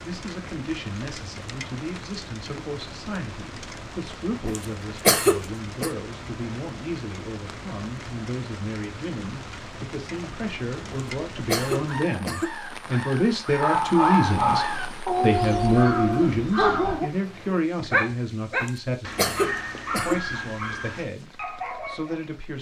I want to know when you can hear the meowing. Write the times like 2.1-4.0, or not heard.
not heard.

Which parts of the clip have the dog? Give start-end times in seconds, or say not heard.
13.6-22.2.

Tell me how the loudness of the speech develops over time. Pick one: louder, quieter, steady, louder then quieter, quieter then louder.
louder then quieter.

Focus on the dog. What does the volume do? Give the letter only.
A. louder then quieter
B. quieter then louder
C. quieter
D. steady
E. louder
C.